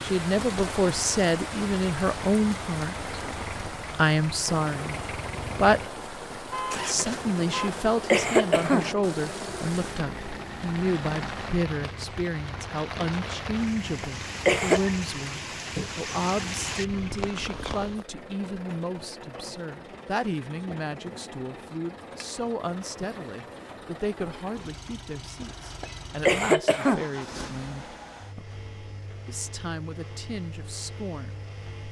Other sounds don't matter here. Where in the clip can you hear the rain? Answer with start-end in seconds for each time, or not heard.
0.0-18.1.